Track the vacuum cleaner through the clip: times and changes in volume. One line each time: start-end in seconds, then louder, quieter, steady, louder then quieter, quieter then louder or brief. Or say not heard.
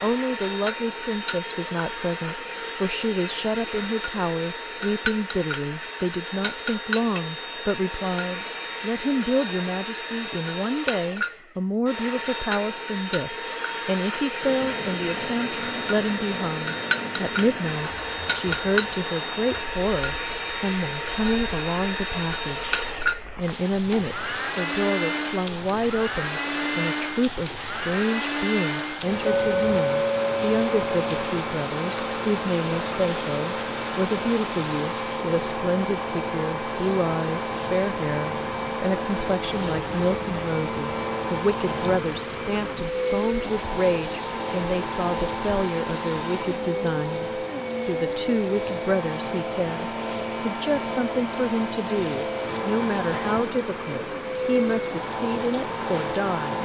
0.0-56.6 steady.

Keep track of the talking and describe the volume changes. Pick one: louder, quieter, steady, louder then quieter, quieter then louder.
steady.